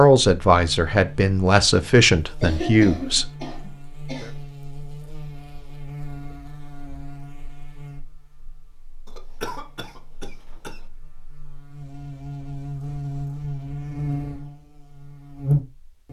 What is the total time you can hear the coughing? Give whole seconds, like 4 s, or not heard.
4 s.